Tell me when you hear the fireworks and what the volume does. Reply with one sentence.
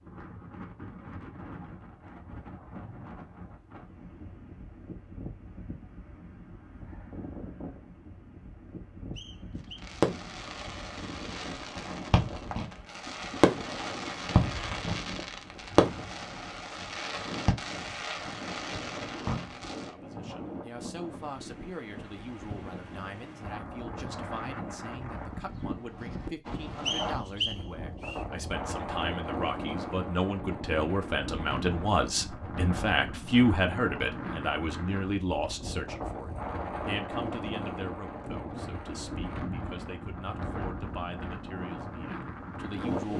The fireworks can be heard from 9.8 to 19.9 s, getting louder then quieter.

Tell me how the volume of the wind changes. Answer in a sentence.
The volume of the wind goes up.